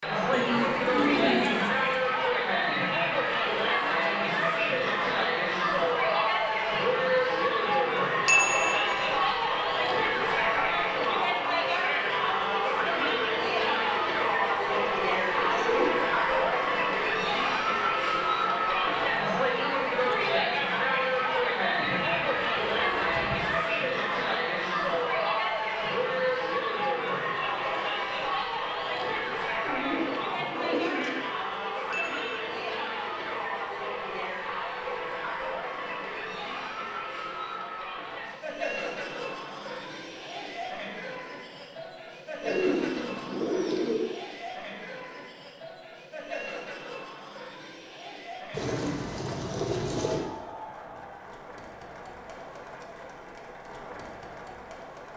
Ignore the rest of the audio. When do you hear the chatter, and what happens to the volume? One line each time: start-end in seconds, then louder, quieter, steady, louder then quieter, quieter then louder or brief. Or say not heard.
0.0-55.1 quieter.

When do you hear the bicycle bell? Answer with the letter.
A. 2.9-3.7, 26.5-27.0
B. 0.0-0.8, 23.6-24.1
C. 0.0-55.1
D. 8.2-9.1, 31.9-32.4
D.